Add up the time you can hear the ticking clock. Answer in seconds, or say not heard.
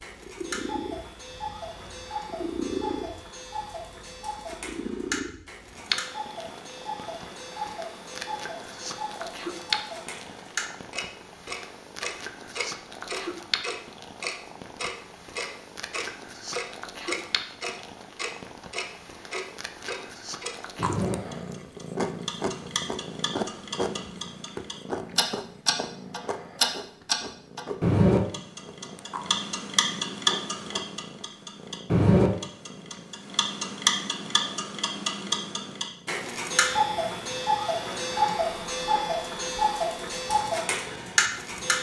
42 s.